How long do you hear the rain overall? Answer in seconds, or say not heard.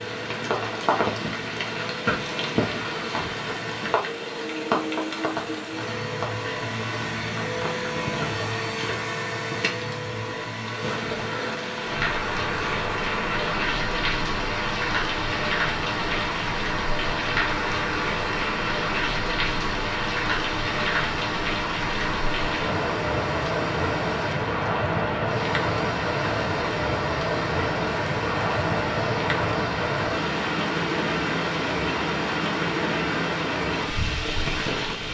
35 s.